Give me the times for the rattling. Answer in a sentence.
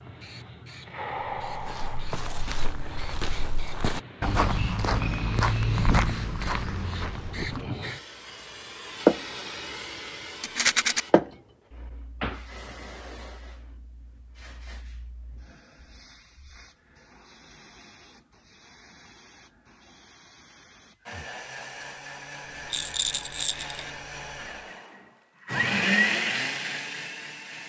The rattling can be heard from 10.4 to 11.0 s and from 22.7 to 23.8 s.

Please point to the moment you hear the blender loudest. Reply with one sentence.
The loudest moment of the blender is at 26 seconds.